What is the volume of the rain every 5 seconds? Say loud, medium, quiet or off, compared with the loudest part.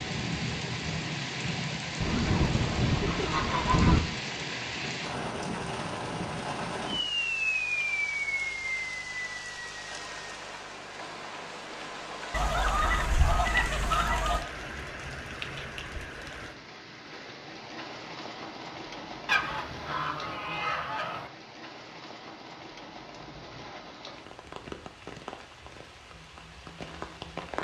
loud, loud, medium, medium, quiet, medium.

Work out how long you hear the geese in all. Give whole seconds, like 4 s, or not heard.
6 s.